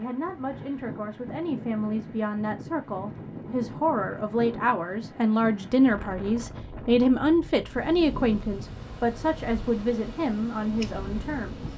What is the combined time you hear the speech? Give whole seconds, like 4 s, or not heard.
12 s.